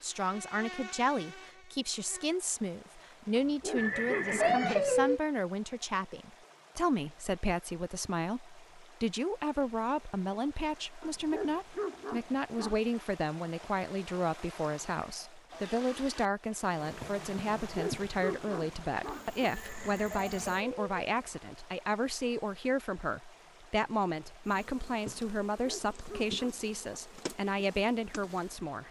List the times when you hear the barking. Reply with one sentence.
The barking can be heard from 3.4 to 4.7 s, from 11.0 to 12.8 s, from 17.6 to 19.5 s and from 25.5 to 27.0 s.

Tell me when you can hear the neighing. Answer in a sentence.
You can hear the neighing from 3.8 to 5.2 s and from 19.5 to 20.9 s.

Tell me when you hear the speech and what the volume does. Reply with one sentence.
The speech can be heard from 0.0 to 28.8 s, at a steady volume.